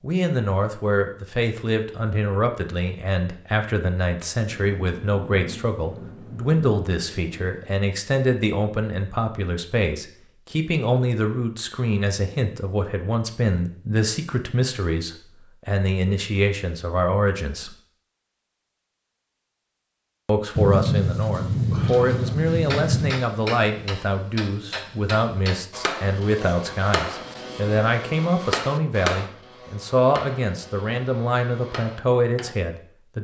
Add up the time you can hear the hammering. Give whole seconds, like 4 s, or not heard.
10 s.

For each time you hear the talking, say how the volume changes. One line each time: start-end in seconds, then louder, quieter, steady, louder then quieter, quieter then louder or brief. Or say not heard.
0.0-17.8 steady
20.2-33.1 steady.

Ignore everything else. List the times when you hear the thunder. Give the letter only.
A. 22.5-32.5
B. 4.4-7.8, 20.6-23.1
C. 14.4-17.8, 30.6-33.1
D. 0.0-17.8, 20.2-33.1
B.